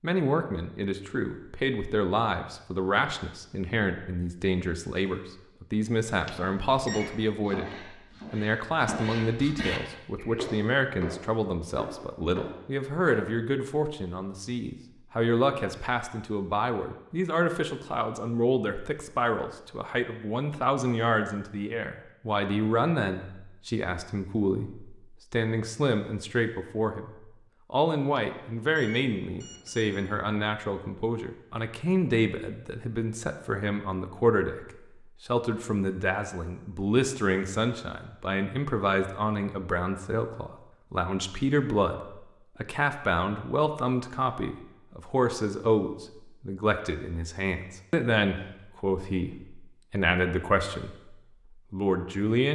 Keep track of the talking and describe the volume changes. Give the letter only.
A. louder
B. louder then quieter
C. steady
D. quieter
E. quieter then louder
C.